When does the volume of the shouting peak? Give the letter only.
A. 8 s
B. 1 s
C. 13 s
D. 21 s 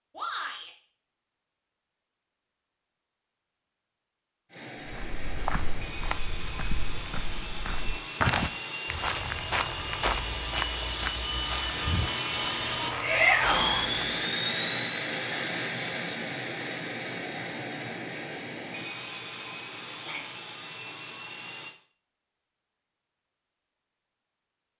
C.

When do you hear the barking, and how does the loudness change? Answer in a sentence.
The barking can't be heard in this clip.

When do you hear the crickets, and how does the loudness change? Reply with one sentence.
The crickets can't be heard in this clip.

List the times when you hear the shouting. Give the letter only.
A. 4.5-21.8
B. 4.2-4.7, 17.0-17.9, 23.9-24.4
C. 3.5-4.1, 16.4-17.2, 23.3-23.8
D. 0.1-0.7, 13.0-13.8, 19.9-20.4
D.